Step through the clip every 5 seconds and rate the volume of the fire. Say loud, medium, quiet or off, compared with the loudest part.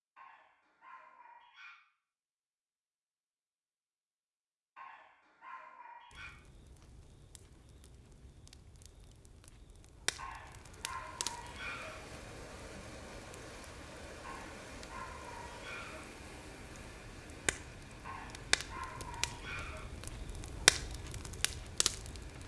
off, quiet, quiet, medium, loud.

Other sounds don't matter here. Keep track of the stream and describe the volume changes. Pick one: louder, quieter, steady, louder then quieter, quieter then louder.
quieter.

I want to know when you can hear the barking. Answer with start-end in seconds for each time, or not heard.
0.1-1.8, 4.8-6.3, 10.2-11.9, 14.2-16.0, 18.0-19.8.